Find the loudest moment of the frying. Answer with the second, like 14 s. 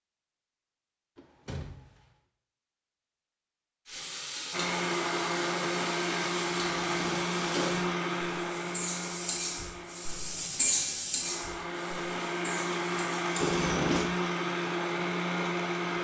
11 s.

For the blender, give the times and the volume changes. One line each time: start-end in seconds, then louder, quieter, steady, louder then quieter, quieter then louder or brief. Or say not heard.
4.5-16.0 quieter then louder.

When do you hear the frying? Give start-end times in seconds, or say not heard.
3.9-13.8.